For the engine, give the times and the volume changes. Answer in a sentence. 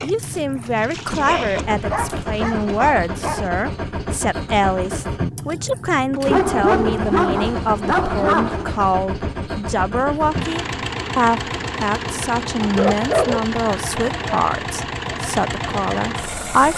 You can hear the engine from 0.0 to 16.7 s, at a steady volume.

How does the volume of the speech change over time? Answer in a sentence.
The volume of the speech stays about the same.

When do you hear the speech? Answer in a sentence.
The speech can be heard from 0.0 to 16.7 s.